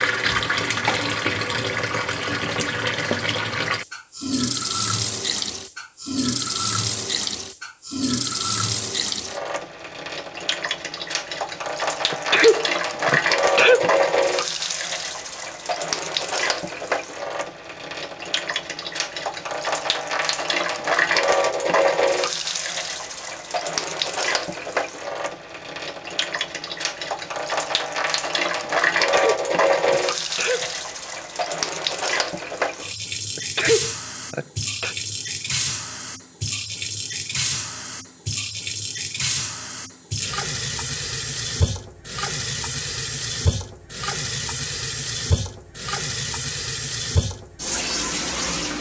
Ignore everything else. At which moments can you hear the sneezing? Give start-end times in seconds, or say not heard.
12.1-13.9, 28.9-30.8, 33.4-35.0.